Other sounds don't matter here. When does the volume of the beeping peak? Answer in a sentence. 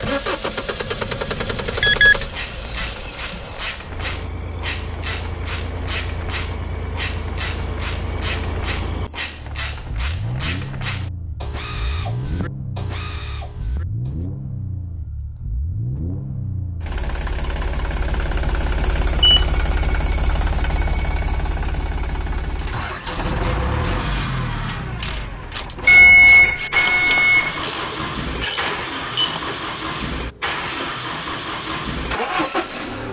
The volume of the beeping peaks at 26 seconds.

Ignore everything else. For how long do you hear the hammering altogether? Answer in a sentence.
The hammering can't be heard in this clip.